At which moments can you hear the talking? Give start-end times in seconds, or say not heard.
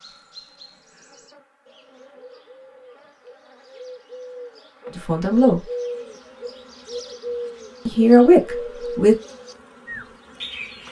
5.0-5.6, 7.8-9.2.